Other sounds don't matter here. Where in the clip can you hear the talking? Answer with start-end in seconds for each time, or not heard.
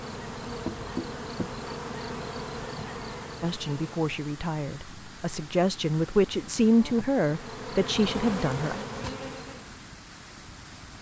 3.4-8.8.